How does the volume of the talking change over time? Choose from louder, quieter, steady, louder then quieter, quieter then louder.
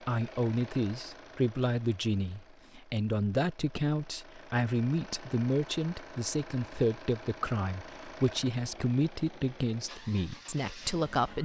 steady.